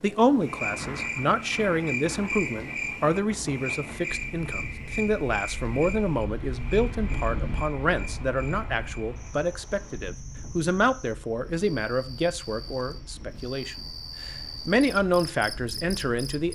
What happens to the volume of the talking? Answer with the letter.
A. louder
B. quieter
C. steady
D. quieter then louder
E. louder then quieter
C.